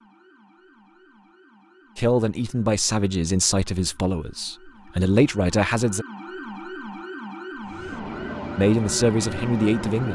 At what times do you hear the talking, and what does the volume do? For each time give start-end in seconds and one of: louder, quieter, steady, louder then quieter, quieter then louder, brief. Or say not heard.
1.9-6.0 quieter then louder
8.6-10.1 brief.